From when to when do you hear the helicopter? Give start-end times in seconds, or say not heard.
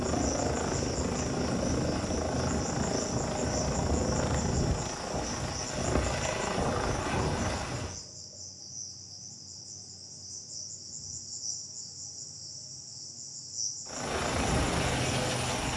0.0-8.0, 13.8-15.7.